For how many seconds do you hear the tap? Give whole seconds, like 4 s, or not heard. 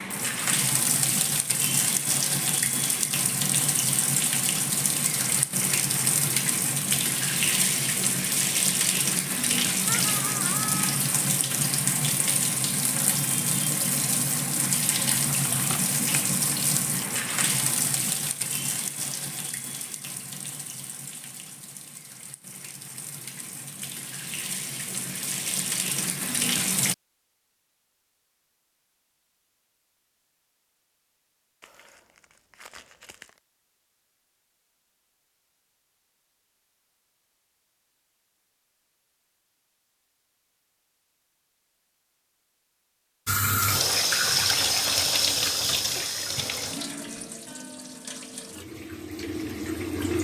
34 s.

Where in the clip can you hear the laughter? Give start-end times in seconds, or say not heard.
9.8-10.9.